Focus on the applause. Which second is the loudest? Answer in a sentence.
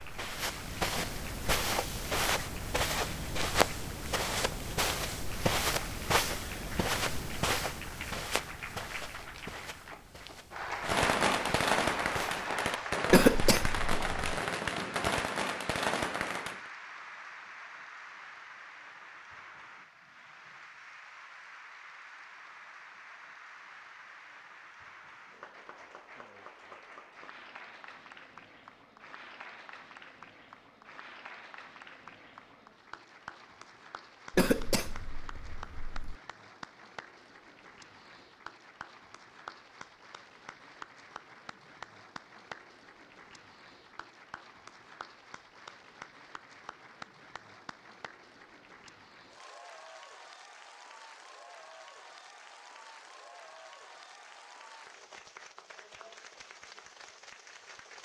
The volume of the applause peaks at 12 seconds.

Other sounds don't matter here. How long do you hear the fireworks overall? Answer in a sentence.
The fireworks can be heard for 6 seconds in total.